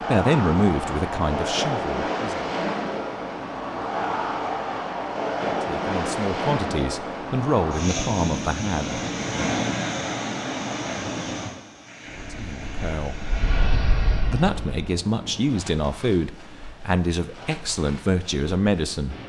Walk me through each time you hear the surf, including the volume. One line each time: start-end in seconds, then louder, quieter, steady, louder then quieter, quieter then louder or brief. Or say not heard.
0.0-19.2 quieter.